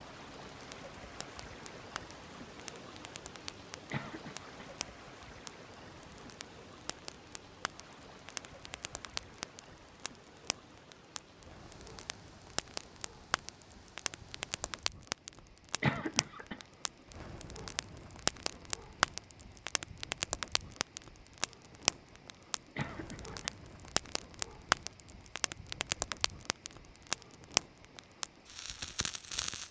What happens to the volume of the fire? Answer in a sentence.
The loudness of the fire goes up.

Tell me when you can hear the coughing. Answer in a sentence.
The coughing can be heard from 3.9 to 4.7 s, from 15.8 to 16.6 s and from 22.8 to 23.4 s.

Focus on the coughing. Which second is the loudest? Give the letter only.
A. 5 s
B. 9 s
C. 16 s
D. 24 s
C.